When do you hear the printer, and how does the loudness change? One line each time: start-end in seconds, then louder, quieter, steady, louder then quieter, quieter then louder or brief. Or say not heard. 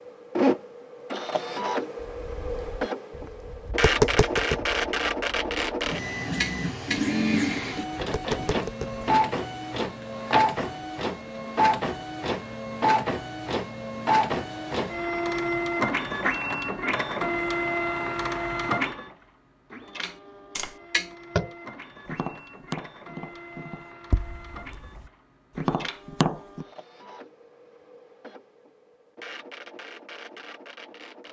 0.1-31.2 quieter.